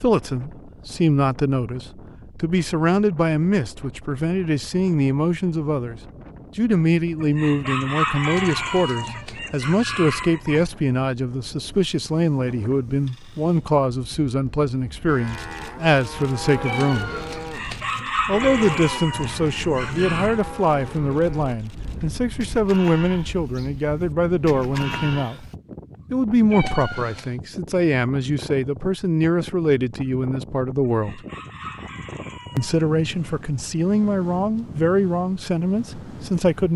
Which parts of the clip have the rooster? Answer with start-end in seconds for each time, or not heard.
7.2-10.7, 17.4-20.4, 30.8-33.4.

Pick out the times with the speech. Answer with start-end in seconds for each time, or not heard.
0.0-17.1, 18.2-25.4, 26.1-31.2, 32.5-36.7.